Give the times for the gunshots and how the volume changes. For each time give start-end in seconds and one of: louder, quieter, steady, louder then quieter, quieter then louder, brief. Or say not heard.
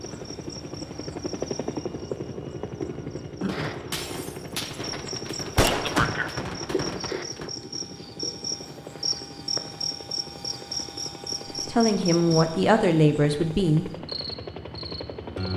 3.5-7.5 louder then quieter.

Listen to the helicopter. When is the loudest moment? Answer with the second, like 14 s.
2 s.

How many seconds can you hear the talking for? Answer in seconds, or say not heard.
2 s.